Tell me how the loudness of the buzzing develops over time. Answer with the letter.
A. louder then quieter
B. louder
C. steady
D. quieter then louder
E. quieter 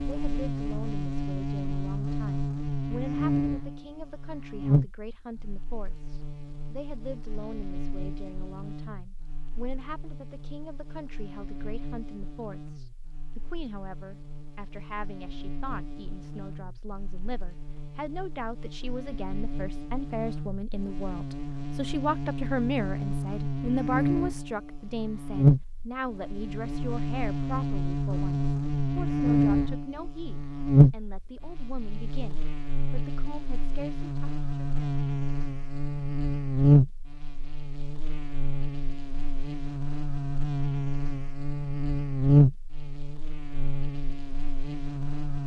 D.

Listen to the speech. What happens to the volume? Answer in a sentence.
The volume of the speech goes up, then down.